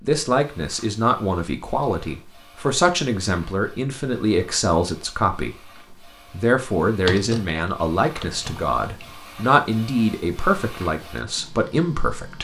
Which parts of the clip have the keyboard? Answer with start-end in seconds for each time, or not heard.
7.0-9.2.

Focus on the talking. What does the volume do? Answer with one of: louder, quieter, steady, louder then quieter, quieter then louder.
steady.